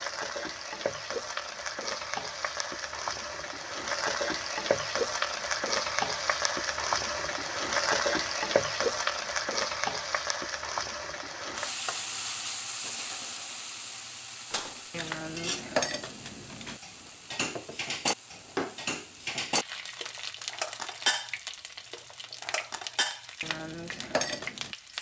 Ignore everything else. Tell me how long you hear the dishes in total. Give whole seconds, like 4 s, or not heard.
10 s.